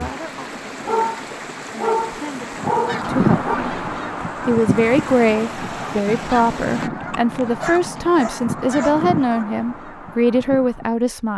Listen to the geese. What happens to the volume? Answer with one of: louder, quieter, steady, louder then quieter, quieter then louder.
quieter.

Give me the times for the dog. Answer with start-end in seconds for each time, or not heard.
0.8-3.5, 7.6-9.4.